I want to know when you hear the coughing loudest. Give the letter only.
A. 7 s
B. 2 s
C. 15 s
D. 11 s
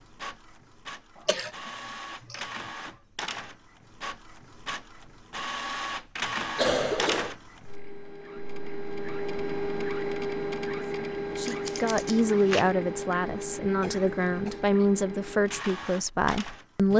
A.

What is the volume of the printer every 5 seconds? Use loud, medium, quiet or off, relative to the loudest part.
medium, loud, loud, medium.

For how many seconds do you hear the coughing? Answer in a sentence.
You can hear the coughing for 3 seconds altogether.